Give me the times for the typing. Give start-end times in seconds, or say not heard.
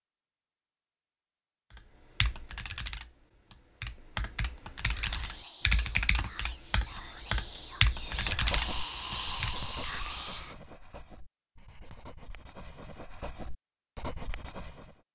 1.7-9.6.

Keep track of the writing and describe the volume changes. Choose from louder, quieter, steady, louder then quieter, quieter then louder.
quieter then louder.